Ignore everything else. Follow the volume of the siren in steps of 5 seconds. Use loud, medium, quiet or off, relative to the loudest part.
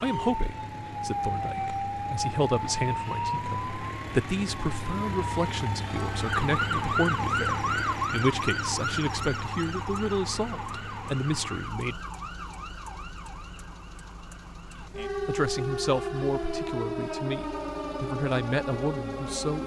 loud, loud, medium, loud.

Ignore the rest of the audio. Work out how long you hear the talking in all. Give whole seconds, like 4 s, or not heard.
17 s.